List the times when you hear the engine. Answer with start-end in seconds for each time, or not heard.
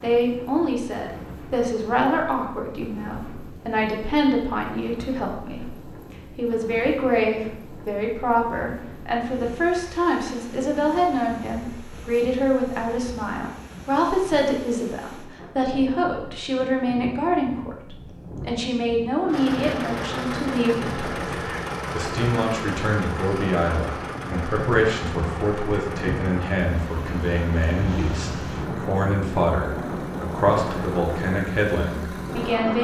19.2-32.7.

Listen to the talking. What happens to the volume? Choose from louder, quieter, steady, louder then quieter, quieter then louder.
steady.